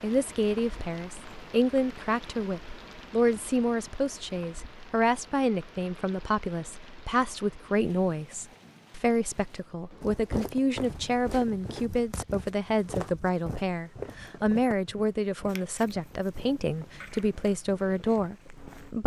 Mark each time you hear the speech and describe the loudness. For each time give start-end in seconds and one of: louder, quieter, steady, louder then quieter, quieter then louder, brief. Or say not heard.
0.0-19.0 steady.